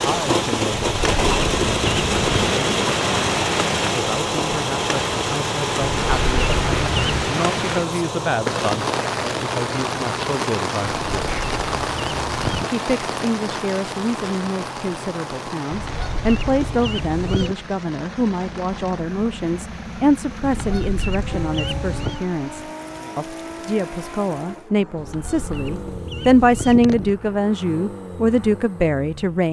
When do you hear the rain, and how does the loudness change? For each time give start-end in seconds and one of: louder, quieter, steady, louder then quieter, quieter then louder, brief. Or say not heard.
0.0-24.7 quieter.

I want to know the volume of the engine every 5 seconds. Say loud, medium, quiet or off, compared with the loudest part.
loud, medium, medium, quiet, quiet, quiet.